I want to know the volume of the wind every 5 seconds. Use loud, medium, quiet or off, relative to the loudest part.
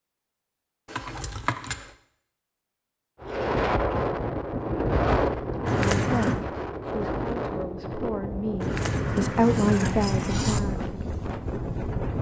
loud, loud, medium.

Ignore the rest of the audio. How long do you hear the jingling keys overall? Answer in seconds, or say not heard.
4 s.